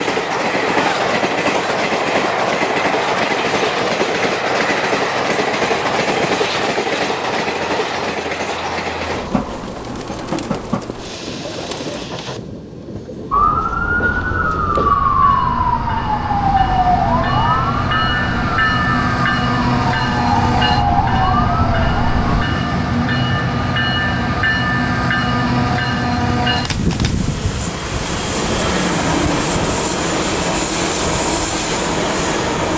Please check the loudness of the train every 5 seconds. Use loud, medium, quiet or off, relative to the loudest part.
loud, loud, medium, loud, loud, loud, loud.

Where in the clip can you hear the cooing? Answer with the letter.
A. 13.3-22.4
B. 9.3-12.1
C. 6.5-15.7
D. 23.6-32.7
B.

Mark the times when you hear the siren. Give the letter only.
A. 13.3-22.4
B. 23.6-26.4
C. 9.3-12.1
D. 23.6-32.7
A.